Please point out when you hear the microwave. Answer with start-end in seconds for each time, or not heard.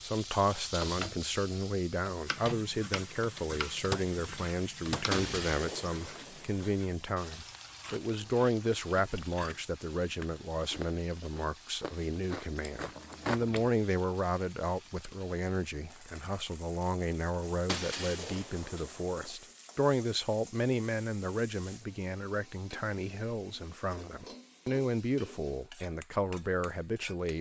2.4-5.5.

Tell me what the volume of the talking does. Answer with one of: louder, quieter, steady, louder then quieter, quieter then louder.
steady.